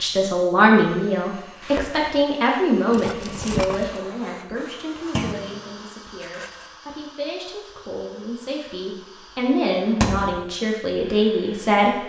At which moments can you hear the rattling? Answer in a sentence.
The rattling can be heard from 2.9 to 4.0 s and from 6.2 to 6.8 s.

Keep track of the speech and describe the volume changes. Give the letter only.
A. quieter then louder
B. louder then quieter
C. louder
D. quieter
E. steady
A.